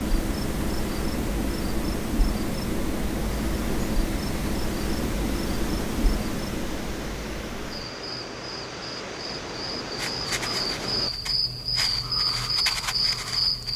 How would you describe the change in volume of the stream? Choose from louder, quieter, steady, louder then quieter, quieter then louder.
louder.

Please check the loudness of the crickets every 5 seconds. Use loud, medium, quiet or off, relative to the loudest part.
loud, medium, loud.